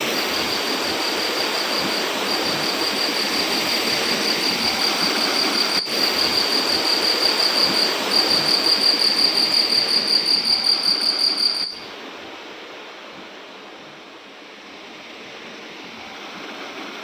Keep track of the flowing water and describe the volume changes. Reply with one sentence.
The loudness of the flowing water goes down.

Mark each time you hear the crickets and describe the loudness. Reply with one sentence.
The crickets can be heard from 0.2 to 11.7 s, getting louder.